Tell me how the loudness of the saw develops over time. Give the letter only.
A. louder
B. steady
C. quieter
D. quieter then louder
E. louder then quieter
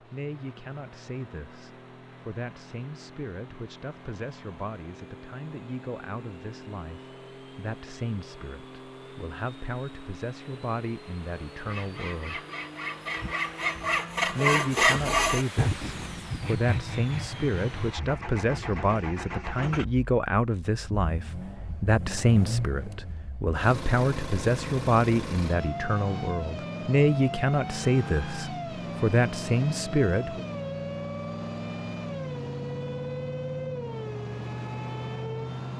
E.